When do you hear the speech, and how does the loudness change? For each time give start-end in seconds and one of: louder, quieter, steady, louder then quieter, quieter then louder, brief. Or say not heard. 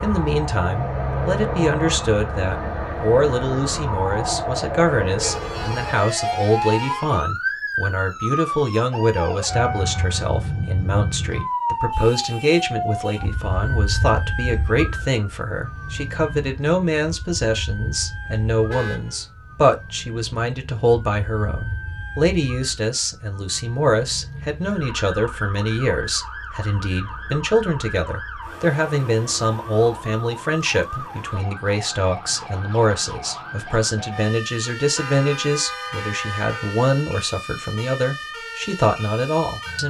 0.0-39.8 steady.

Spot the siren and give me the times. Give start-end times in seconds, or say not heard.
0.0-39.8.